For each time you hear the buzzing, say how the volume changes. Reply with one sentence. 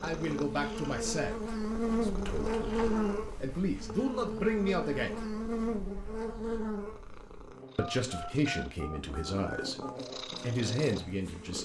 The buzzing can be heard from 0.0 to 11.6 s, getting quieter then louder.